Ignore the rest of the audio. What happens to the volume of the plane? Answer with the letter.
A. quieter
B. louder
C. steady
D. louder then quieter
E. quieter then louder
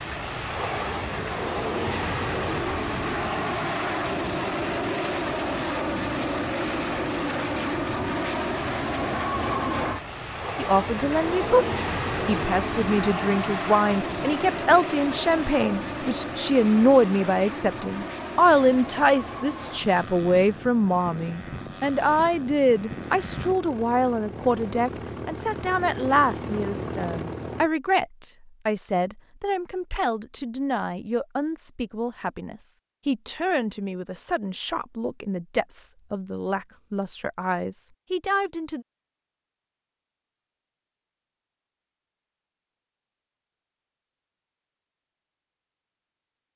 A.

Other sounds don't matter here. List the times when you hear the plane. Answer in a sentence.
The plane can be heard from 0.0 to 27.7 s.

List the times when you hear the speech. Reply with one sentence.
The speech can be heard from 10.6 to 38.9 s.